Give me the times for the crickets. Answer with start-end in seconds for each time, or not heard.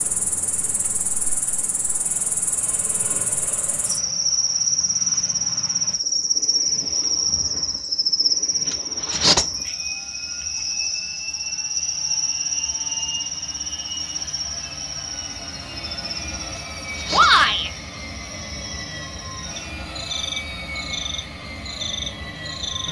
0.0-22.8.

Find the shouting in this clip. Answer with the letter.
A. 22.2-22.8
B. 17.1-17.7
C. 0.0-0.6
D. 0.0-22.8
B.